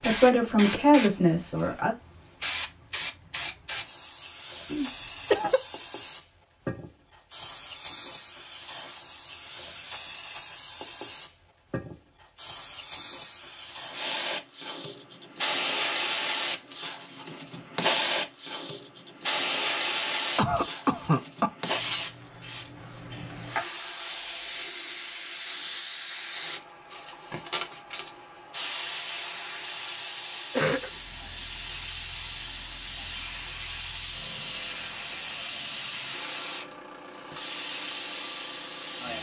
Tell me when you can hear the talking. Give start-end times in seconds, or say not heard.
0.0-1.9.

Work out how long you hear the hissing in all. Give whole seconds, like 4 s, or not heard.
39 s.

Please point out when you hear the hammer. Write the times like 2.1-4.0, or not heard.
not heard.